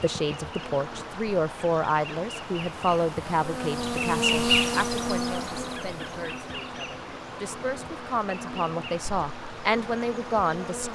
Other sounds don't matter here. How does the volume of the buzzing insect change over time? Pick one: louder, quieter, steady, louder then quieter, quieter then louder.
louder then quieter.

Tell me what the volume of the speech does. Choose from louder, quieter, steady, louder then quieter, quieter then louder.
quieter then louder.